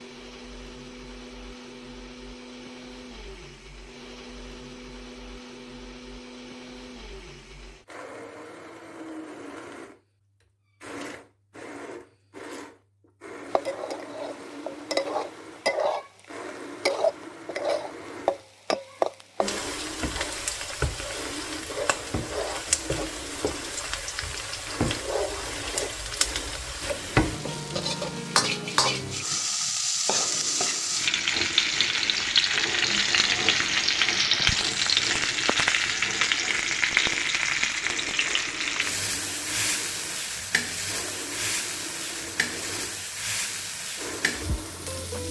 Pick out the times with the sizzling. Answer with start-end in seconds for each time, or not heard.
13.5-45.2.